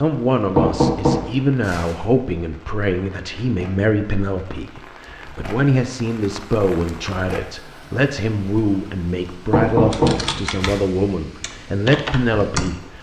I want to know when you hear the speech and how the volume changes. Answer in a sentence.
You can hear the speech from 0.0 to 12.9 s, at a steady volume.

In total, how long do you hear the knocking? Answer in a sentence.
You can hear the knocking for 3 seconds altogether.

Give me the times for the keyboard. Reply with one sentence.
You can hear the keyboard from 9.9 to 12.9 s.